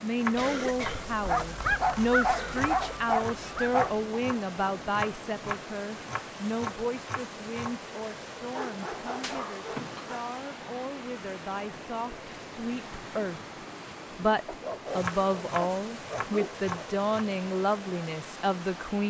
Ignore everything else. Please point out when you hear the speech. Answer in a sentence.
You can hear the speech from 0.0 to 13.4 s and from 14.2 to 19.0 s.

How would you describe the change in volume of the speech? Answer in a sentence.
The volume of the speech goes down, then up.